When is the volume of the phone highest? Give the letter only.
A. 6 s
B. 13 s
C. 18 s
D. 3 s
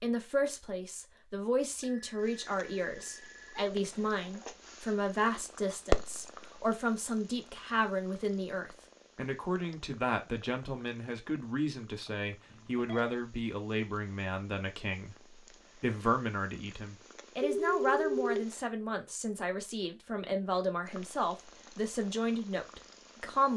C.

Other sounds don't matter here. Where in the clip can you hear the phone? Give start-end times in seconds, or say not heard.
1.8-3.6, 12.5-13.2, 17.4-18.4.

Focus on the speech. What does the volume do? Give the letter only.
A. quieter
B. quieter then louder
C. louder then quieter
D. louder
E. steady
E.